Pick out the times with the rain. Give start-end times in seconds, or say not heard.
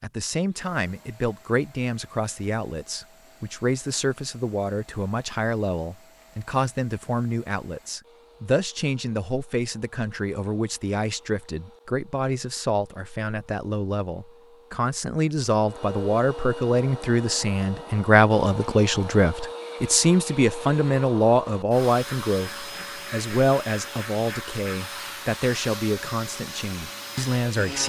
not heard.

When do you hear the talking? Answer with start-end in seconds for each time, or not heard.
0.0-27.8.